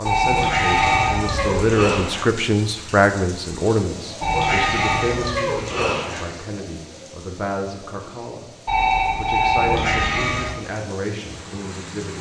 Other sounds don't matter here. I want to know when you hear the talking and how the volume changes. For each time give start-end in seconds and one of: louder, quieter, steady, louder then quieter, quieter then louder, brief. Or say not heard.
0.0-12.1 quieter.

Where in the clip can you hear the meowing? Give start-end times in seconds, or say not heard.
0.2-2.2, 4.2-6.2, 9.6-10.6.